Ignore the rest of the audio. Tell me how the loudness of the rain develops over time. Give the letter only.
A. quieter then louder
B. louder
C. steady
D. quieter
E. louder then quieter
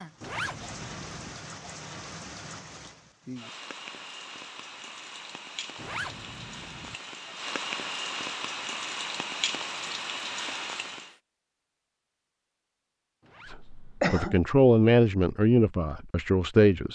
B.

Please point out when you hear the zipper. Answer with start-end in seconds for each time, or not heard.
0.2-1.4, 5.8-7.0, 13.2-14.2.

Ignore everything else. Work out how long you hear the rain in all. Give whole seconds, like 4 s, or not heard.
11 s.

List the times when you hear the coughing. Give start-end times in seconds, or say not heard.
14.0-14.4.